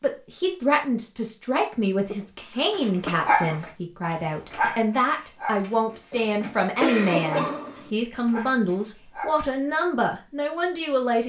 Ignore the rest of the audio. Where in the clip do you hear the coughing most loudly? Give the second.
7 s.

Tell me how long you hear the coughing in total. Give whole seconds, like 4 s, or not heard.
3 s.